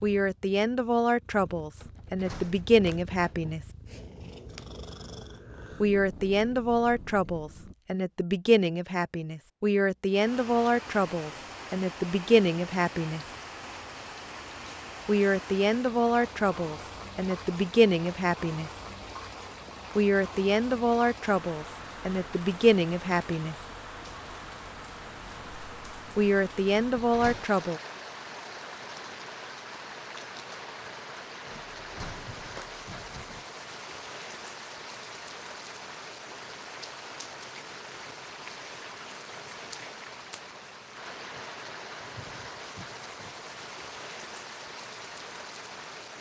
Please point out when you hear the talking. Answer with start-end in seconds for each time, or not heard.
0.0-3.6, 5.8-13.2, 15.1-18.7, 19.9-23.6, 26.1-27.8.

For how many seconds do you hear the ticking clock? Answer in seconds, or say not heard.
not heard.